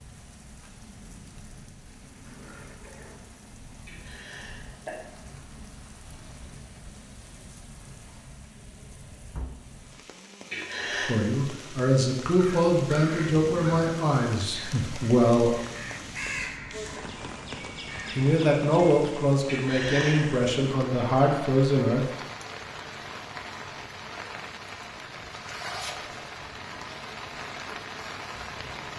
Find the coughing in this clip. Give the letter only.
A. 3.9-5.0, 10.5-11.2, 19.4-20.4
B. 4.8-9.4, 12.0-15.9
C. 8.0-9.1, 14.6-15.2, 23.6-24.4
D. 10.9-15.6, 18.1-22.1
A.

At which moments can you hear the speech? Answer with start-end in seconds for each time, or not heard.
10.9-15.6, 18.1-22.1.